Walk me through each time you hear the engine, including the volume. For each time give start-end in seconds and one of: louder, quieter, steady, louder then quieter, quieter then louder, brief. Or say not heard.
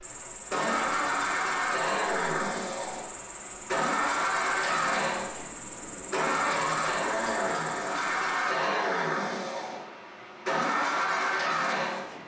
0.0-12.2 steady.